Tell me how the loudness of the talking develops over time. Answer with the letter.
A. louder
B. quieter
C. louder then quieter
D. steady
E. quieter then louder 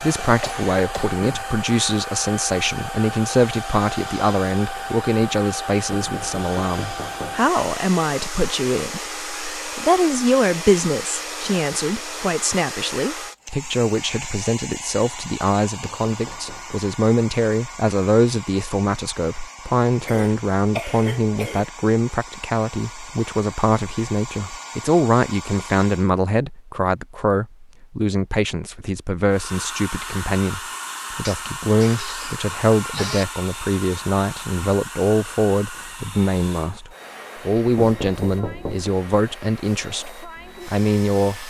D.